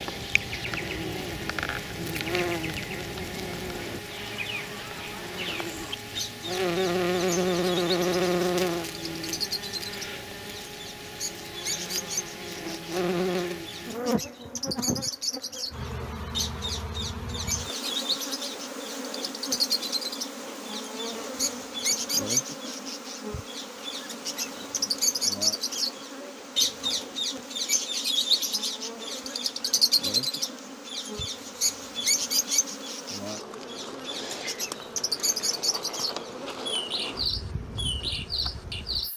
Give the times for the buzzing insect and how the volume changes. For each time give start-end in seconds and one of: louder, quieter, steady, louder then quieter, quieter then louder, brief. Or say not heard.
0.0-39.1 quieter.